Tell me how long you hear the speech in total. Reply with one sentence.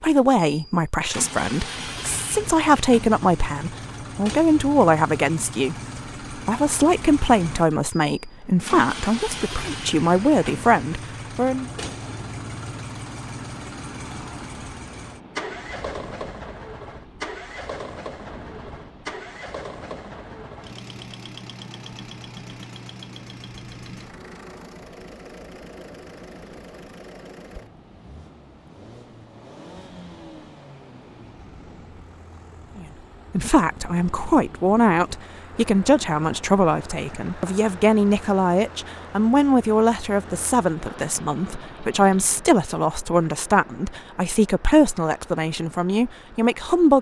You can hear the speech for 26 seconds altogether.